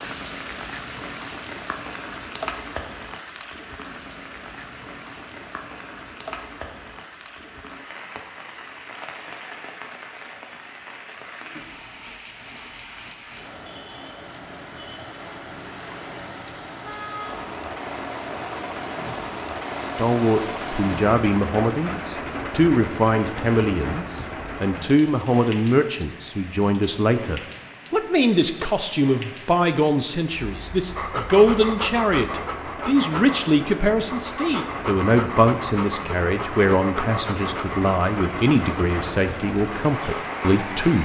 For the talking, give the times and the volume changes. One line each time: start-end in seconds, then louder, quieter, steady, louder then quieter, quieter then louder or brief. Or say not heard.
19.9-41.0 steady.